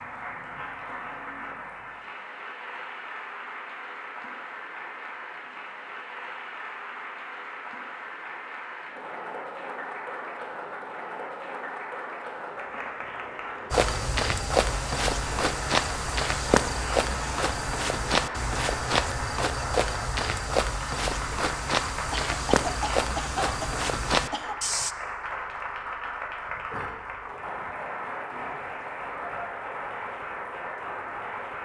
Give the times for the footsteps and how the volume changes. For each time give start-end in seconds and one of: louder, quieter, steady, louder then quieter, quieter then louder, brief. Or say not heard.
13.7-24.9 steady.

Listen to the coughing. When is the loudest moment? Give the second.
23 s.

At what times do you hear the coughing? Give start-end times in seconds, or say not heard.
22.1-24.6.